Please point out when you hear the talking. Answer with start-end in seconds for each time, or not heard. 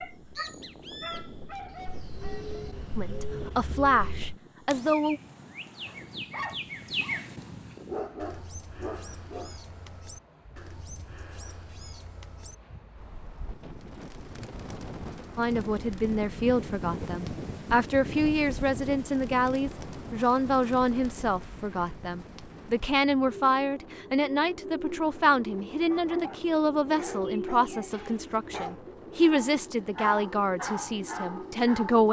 3.0-5.2, 15.3-32.0.